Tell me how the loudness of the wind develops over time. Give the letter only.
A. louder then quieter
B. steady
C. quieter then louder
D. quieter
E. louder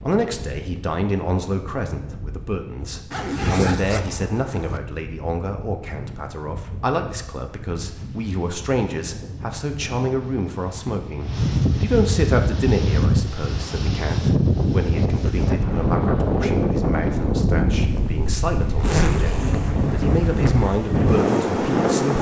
E.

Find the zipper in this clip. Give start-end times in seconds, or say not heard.
3.1-4.8, 17.9-19.8.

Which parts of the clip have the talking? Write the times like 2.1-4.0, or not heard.
0.0-22.1.